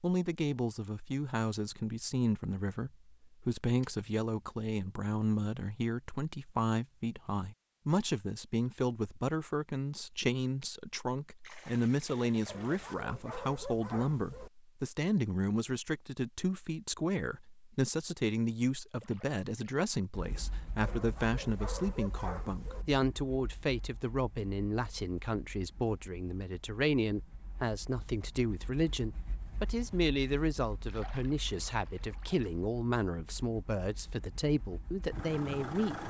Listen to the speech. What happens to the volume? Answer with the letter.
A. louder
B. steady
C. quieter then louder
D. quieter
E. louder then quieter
B.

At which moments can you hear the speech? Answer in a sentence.
You can hear the speech from 0.0 to 36.0 s.